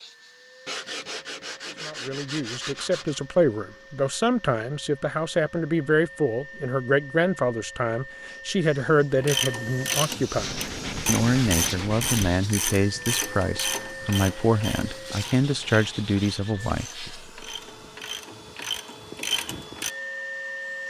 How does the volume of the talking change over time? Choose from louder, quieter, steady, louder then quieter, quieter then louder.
steady.